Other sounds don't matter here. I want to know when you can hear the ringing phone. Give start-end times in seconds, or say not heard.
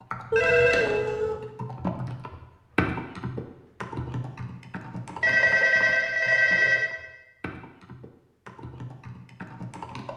0.3-1.4, 5.2-6.9.